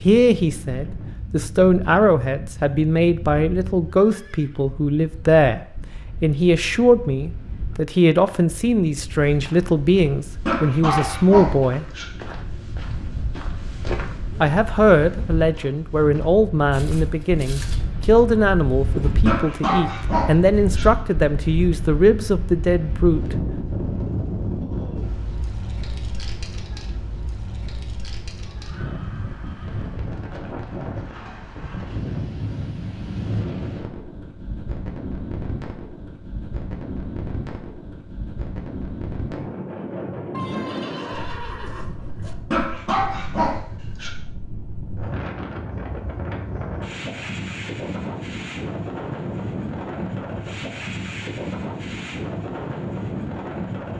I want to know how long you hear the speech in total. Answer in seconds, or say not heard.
21 s.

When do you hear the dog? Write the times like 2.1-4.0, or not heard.
10.4-12.1, 19.2-20.9, 42.5-44.1.